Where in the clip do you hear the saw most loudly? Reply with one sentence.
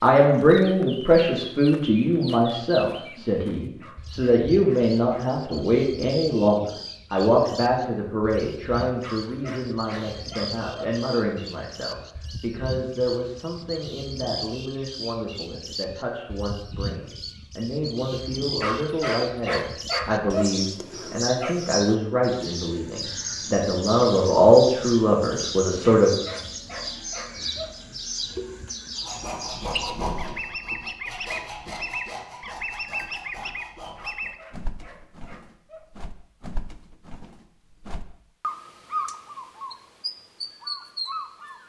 The loudest moment of the saw is at 30 seconds.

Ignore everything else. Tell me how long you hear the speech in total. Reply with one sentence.
You can hear the speech for 26 seconds altogether.